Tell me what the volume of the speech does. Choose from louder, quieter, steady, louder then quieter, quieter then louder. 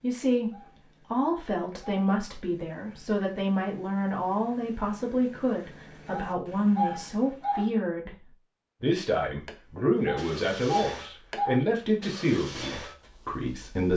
steady.